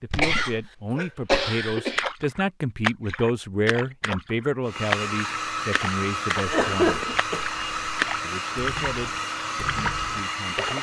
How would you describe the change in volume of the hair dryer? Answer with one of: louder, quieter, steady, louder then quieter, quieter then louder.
steady.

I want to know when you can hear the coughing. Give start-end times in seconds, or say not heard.
0.2-2.1, 6.5-8.2.